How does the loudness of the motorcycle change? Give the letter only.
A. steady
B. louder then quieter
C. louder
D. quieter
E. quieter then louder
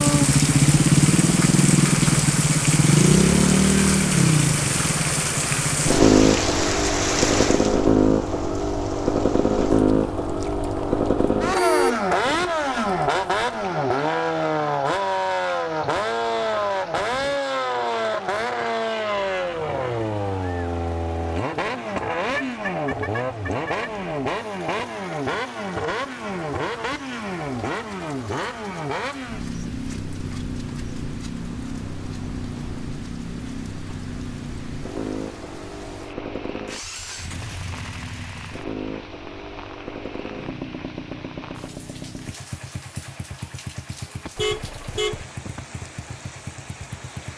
D.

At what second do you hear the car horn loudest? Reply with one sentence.
The loudest moment of the car horn is at 12 seconds.